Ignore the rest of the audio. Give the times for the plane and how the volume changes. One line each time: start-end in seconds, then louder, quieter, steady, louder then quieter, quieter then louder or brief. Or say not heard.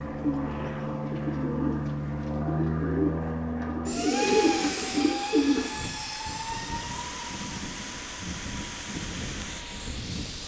0.0-10.4 quieter.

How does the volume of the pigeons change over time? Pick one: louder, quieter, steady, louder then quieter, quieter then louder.
louder.